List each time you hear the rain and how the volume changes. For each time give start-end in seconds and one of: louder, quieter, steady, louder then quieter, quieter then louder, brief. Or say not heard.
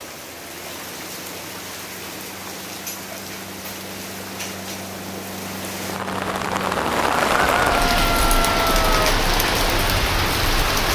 0.0-10.8 louder.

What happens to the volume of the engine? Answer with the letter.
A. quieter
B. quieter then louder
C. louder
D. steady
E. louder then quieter
C.